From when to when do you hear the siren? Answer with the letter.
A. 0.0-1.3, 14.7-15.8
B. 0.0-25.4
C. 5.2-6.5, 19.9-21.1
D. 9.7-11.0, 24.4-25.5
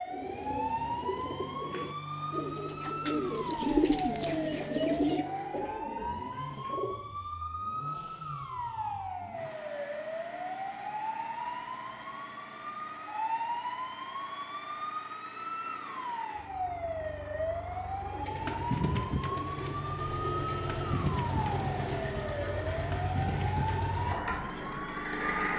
B.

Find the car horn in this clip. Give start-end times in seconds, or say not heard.
5.2-6.5, 19.9-21.1.